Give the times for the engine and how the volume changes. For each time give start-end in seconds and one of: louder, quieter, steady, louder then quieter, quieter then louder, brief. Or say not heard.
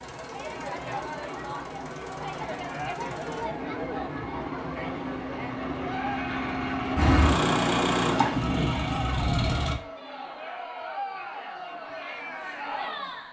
0.0-9.8 louder.